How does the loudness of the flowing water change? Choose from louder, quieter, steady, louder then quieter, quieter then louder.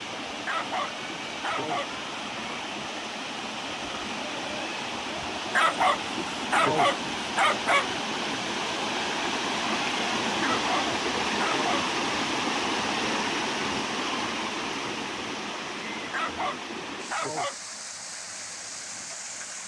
louder then quieter.